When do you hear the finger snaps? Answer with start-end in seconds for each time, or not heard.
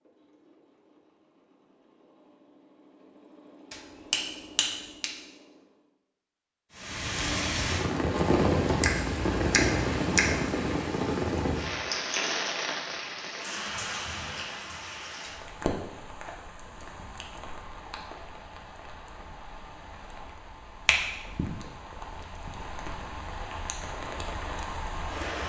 3.7-5.1, 8.7-10.3, 20.9-21.4.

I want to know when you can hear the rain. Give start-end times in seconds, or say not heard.
6.8-25.4.